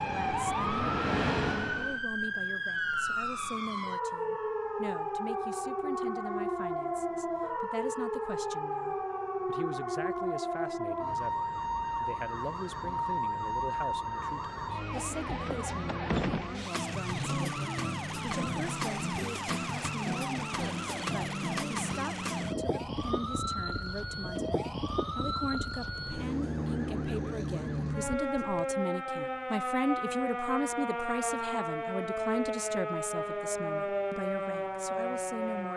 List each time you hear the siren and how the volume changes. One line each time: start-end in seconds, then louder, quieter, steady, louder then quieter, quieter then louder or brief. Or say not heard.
0.0-35.7 steady.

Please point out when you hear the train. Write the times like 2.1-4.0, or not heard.
0.0-2.0.